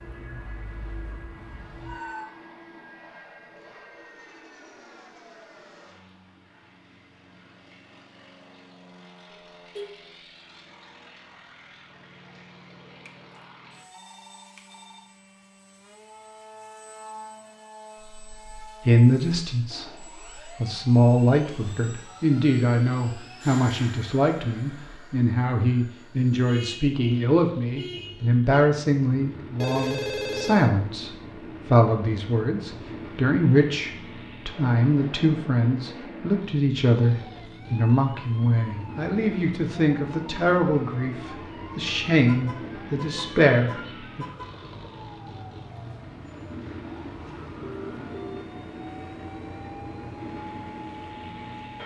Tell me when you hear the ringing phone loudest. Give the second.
30 s.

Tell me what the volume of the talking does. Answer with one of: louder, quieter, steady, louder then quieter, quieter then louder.
steady.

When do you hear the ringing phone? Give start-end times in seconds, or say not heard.
13.9-15.1, 29.6-30.7, 47.6-48.5.